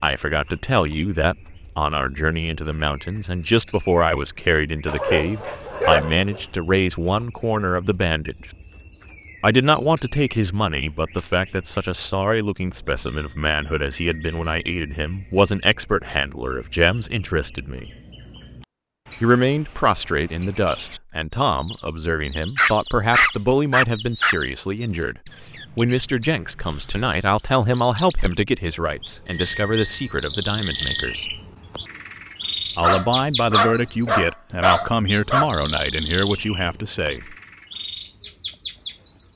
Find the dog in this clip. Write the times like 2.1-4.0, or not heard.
4.8-6.5, 22.6-24.4, 32.8-35.5.